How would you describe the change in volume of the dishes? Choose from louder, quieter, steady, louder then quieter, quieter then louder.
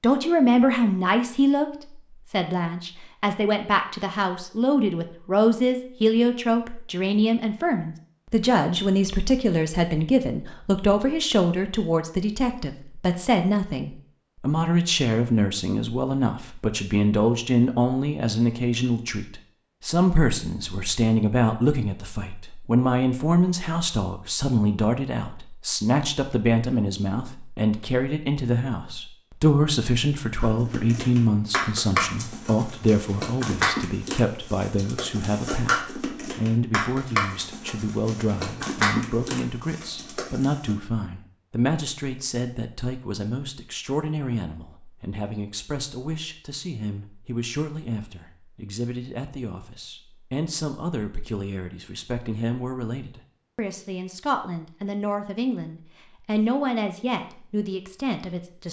steady.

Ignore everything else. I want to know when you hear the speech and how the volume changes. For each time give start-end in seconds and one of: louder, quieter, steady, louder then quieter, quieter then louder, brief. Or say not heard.
0.0-58.6 quieter.